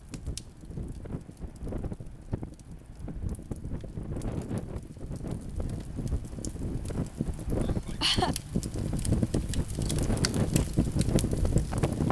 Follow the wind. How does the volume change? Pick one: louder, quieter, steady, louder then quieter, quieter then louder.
louder.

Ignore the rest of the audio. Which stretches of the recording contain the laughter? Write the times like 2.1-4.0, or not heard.
7.6-8.3.